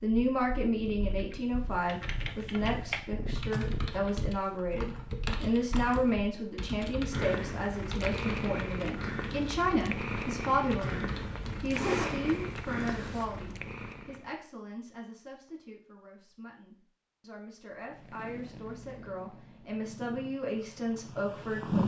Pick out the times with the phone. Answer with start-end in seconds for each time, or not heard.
not heard.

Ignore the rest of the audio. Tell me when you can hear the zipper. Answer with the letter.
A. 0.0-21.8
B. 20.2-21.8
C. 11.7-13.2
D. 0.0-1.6
C.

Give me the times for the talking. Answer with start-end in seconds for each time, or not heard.
0.0-21.8.